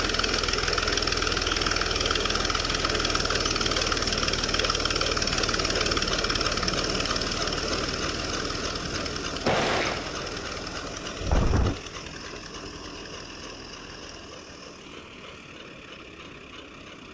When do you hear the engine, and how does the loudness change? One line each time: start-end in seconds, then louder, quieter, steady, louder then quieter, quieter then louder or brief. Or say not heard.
0.0-17.0 quieter.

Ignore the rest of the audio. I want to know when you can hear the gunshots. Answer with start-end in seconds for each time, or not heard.
8.8-11.8.